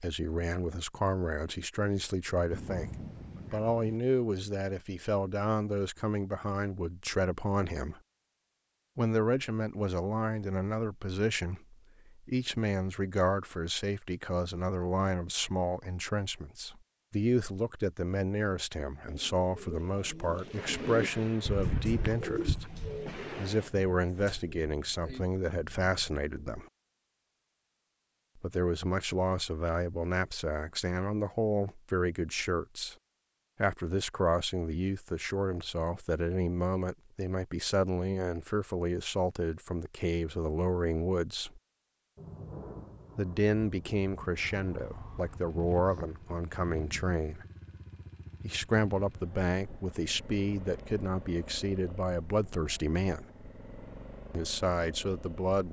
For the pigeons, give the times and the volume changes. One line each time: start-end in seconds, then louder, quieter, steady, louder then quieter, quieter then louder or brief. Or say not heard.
19.1-26.2 louder then quieter.